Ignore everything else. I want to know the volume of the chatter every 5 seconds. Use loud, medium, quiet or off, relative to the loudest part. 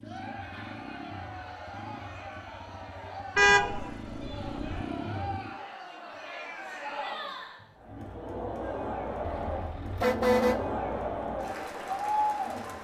medium, medium, loud.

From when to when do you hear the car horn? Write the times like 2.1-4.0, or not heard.
3.4-4.8, 9.2-10.7.